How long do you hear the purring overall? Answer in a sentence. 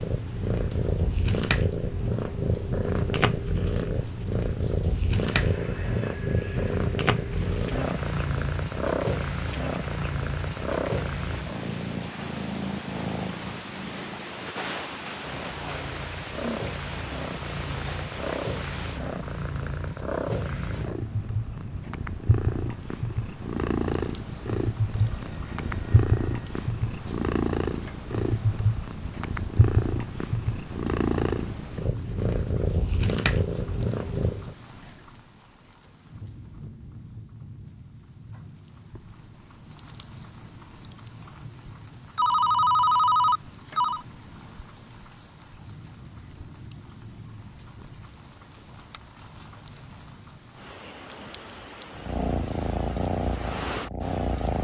You can hear the purring for 37 seconds altogether.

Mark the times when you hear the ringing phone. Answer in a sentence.
You can hear the ringing phone from 5.3 to 6.5 s, from 24.9 to 26.6 s and from 42.1 to 44.0 s.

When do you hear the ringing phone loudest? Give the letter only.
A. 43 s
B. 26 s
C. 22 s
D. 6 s
A.